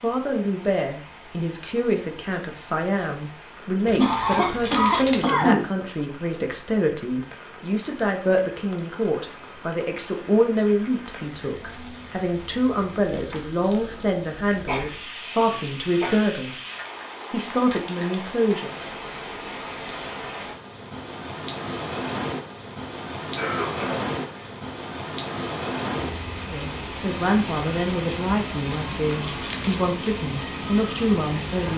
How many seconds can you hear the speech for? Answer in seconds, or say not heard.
23 s.